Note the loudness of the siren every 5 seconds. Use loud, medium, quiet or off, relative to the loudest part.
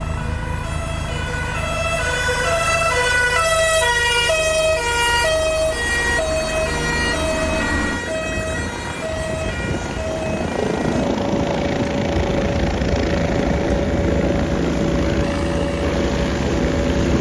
loud, loud, medium, medium.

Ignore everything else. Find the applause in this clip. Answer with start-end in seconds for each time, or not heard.
not heard.